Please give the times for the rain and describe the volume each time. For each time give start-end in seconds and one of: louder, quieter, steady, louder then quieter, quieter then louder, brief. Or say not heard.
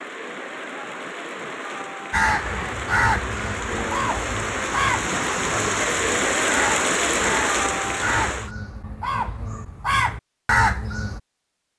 0.0-8.5 louder.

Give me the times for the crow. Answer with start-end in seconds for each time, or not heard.
2.1-11.2.